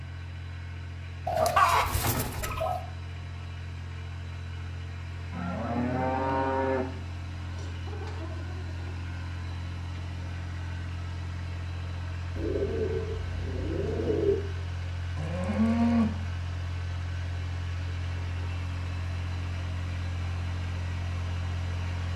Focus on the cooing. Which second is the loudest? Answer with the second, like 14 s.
2 s.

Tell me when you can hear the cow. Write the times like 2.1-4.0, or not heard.
5.3-6.8, 15.2-16.1.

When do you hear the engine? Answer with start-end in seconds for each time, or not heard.
0.0-22.1.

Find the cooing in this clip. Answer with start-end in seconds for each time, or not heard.
1.2-2.8, 12.3-14.3.